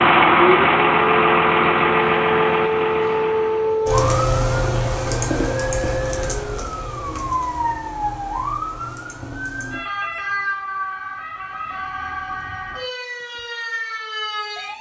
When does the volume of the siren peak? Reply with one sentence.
The volume of the siren peaks at 4 seconds.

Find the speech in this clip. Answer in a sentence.
The speech can't be heard in this clip.